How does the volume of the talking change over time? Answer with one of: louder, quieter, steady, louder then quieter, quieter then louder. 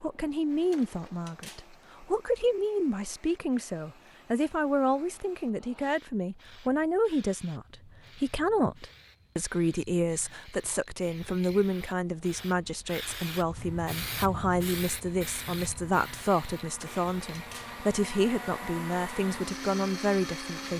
steady.